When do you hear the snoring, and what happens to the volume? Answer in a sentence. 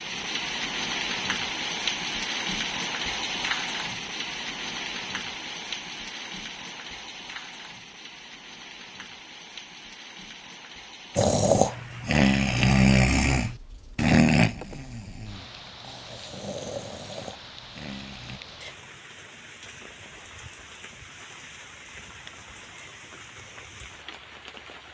The snoring can be heard from 11.2 to 18.4 s, getting quieter.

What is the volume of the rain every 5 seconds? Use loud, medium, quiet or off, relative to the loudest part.
loud, medium, quiet, quiet, quiet.